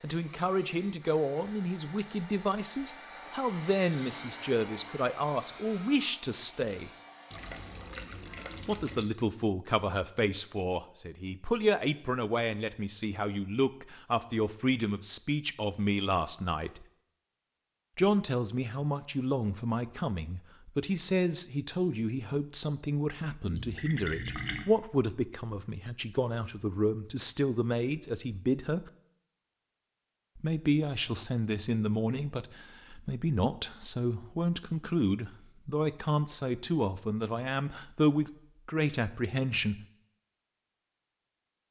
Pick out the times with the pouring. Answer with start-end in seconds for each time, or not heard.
7.3-9.1, 23.5-24.6.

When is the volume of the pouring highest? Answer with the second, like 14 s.
24 s.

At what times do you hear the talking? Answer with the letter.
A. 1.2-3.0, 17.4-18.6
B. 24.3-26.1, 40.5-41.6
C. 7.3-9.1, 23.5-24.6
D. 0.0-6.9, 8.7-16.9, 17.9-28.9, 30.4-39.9
D.